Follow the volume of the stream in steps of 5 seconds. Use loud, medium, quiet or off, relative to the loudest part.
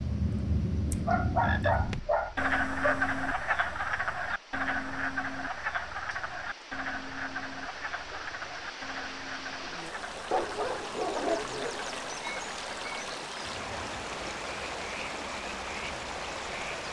quiet, medium, loud, loud.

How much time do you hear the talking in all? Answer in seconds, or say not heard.
not heard.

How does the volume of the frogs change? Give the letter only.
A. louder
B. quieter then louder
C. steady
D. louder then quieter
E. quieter
E.